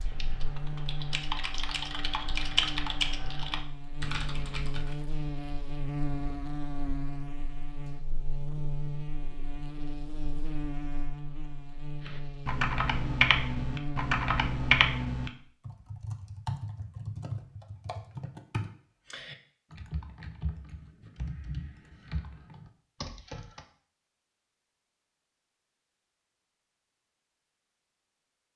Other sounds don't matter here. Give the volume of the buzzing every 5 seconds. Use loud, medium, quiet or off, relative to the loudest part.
loud, loud, loud, off, off, off.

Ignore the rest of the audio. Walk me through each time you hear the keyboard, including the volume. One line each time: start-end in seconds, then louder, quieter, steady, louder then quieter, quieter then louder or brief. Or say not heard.
0.0-5.0 louder then quieter
12.1-23.6 quieter.